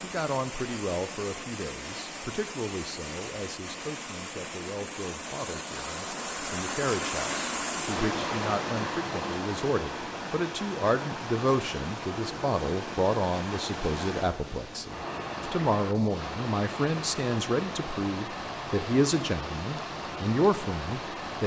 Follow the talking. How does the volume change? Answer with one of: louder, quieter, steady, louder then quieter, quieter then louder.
louder.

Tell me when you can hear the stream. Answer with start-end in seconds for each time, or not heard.
0.0-21.4.